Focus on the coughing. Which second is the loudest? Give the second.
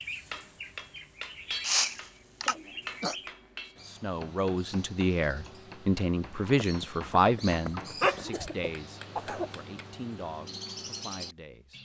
2 s.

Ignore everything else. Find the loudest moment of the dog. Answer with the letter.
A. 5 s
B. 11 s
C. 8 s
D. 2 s
C.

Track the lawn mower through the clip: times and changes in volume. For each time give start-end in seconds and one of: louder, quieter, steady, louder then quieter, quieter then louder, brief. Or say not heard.
not heard.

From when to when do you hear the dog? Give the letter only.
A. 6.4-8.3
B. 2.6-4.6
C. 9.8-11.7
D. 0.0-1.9
A.